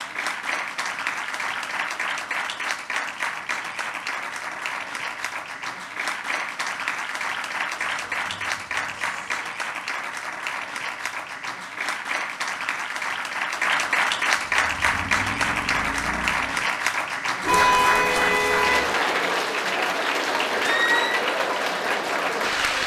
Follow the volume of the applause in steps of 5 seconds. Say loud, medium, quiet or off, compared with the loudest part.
medium, medium, loud, loud, loud.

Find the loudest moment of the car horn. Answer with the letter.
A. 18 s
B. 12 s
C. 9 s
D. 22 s
A.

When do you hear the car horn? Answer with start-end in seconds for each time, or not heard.
7.8-9.4, 17.4-18.9.